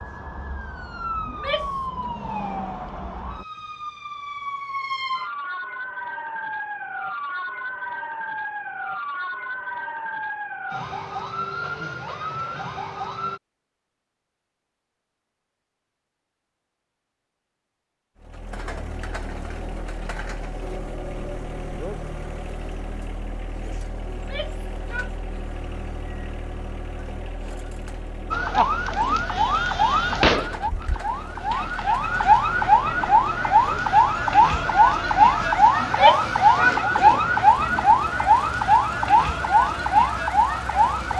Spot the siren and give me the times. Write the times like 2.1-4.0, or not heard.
0.0-13.4, 28.3-41.1.